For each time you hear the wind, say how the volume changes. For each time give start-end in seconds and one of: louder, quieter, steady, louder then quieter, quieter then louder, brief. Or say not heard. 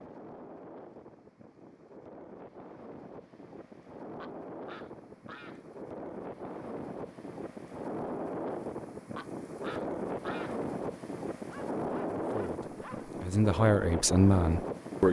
0.0-15.0 louder.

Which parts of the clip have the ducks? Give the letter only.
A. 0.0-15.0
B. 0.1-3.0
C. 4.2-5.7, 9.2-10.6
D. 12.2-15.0
C.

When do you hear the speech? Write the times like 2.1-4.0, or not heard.
12.2-15.0.